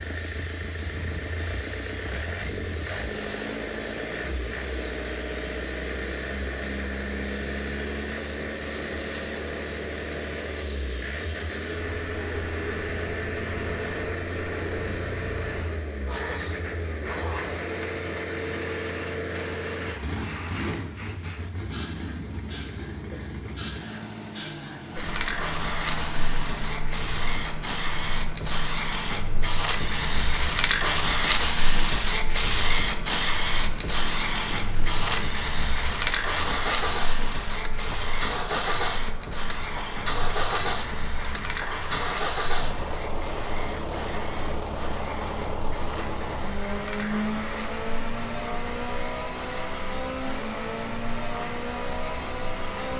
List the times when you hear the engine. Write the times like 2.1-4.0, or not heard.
0.0-52.9.